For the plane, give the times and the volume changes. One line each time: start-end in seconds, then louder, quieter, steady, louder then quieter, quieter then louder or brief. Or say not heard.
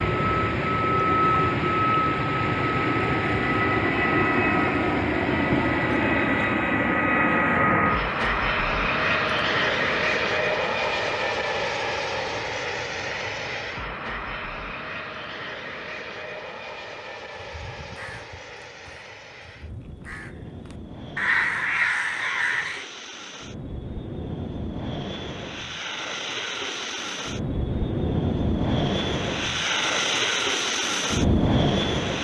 0.0-32.1 quieter then louder.